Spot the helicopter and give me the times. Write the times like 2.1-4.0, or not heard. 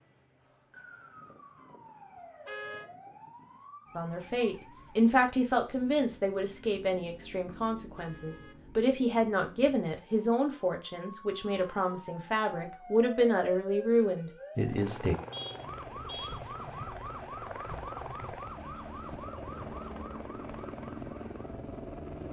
14.6-22.2.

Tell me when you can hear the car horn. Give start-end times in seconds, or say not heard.
2.5-2.9, 8.0-8.6, 15.3-16.4.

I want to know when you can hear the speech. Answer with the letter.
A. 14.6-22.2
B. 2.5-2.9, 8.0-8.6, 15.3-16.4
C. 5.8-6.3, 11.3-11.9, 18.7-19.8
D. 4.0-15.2
D.